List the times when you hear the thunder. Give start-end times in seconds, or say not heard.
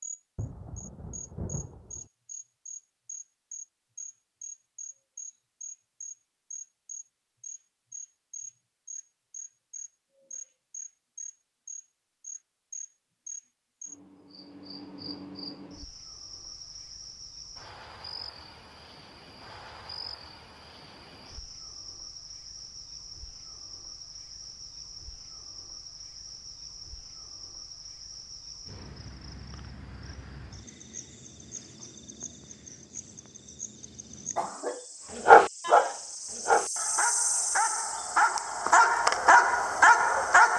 0.3-2.1.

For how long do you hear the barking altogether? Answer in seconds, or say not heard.
5 s.